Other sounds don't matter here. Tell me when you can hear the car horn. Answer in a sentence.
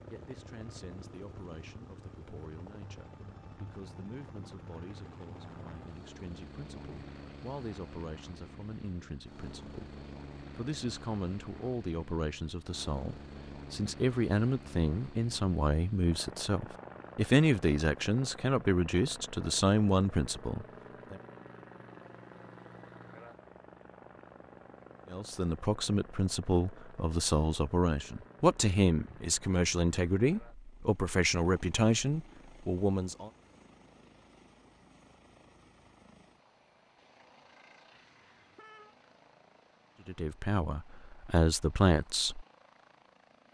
You can hear the car horn from 37.9 to 39.0 s.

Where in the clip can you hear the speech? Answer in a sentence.
The speech can be heard from 0.1 to 21.1 s, from 25.1 to 33.3 s and from 40.0 to 42.5 s.